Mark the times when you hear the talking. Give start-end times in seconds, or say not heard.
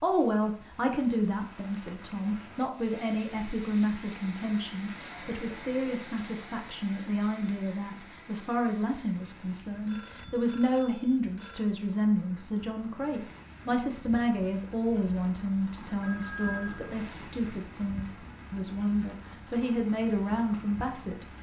0.0-21.2.